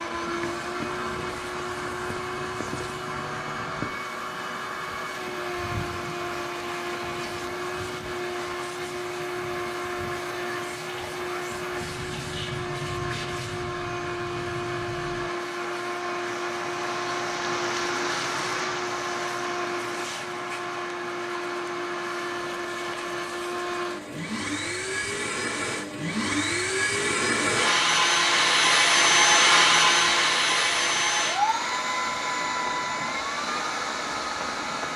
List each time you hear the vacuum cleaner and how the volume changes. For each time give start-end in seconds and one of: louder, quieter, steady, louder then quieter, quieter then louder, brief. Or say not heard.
0.0-34.9 louder.